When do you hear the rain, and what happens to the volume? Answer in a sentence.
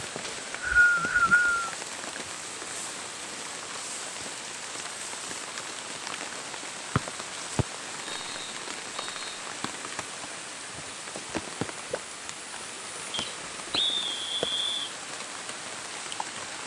You can hear the rain from 0.0 to 16.6 s, at a steady volume.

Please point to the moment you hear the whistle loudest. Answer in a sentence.
The loudest moment of the whistle is at 1 second.